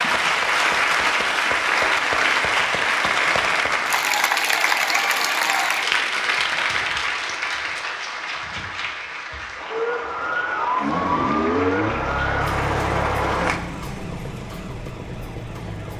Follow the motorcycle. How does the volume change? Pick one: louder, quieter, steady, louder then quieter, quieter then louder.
quieter.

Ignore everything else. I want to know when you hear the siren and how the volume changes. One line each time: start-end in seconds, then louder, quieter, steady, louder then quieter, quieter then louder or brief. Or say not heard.
9.7-15.9 quieter.